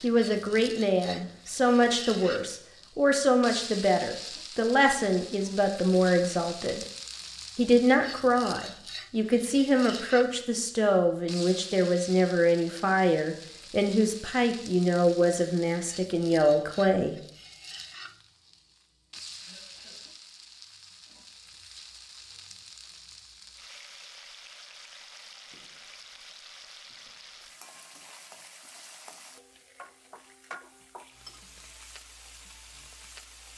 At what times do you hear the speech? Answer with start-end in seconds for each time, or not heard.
0.0-6.8, 7.5-17.1.